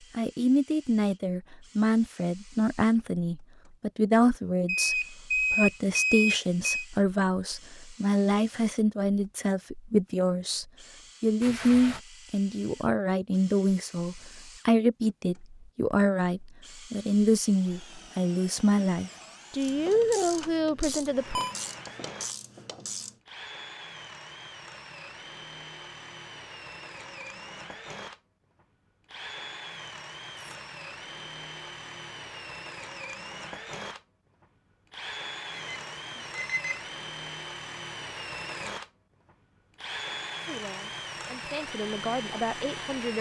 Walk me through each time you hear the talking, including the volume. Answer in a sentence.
You can hear the talking from 0.1 to 21.4 s, at a steady volume; and briefly from 40.5 to 43.1 s.